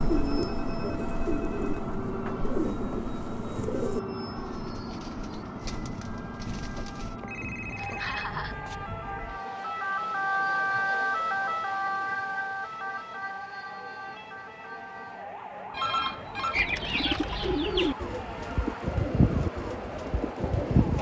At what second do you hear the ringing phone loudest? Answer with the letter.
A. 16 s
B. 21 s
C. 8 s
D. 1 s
A.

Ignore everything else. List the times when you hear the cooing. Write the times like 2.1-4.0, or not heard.
0.0-7.2, 16.5-20.9.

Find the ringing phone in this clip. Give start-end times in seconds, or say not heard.
0.3-1.6, 7.2-8.8, 15.7-16.6.